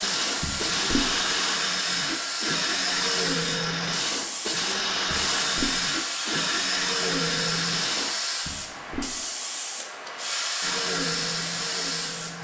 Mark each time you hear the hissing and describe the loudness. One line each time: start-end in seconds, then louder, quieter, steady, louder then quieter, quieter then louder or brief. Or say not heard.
0.0-12.4 steady.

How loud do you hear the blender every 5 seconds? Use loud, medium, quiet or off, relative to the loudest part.
loud, loud, medium.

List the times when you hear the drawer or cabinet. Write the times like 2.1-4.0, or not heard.
0.4-1.1, 5.0-5.8, 8.4-9.2.